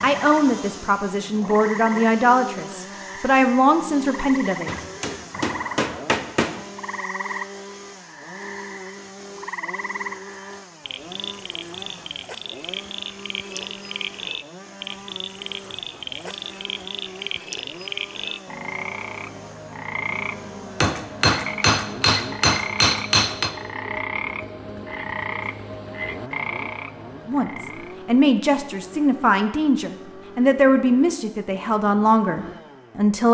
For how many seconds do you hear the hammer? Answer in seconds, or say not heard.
5 s.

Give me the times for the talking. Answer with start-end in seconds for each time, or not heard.
0.0-4.7, 27.2-33.2.